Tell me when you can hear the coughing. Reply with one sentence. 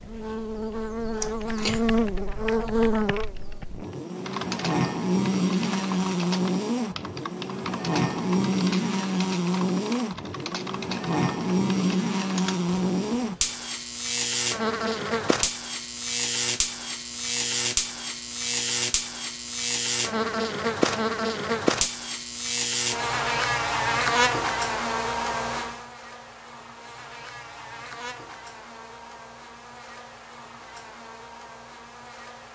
The coughing can be heard from 1.2 to 1.8 s.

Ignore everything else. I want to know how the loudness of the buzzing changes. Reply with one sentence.
The loudness of the buzzing goes down.